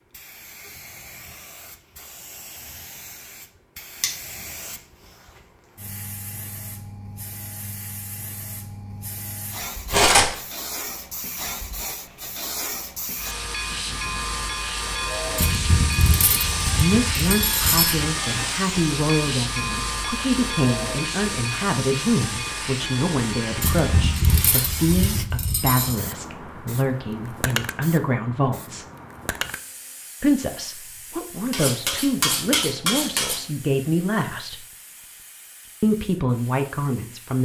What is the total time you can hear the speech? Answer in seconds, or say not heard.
18 s.